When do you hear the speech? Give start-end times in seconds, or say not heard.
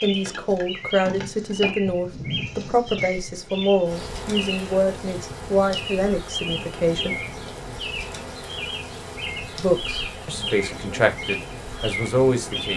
0.0-7.2, 9.6-12.7.